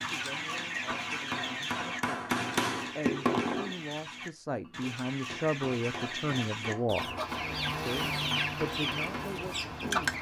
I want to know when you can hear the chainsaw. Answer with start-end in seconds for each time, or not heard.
7.2-10.1.